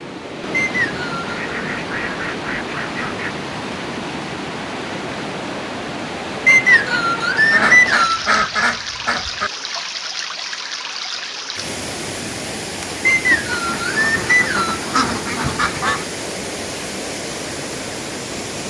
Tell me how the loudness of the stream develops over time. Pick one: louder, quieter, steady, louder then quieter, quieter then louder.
steady.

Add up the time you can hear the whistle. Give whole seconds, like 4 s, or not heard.
4 s.